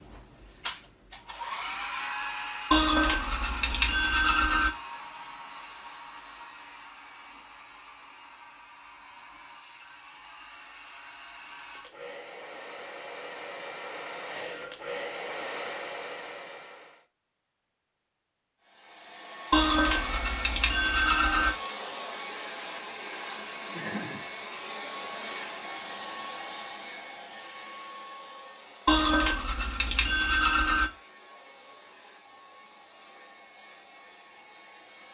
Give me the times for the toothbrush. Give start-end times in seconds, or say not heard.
2.7-4.7, 19.5-21.6, 28.9-30.9.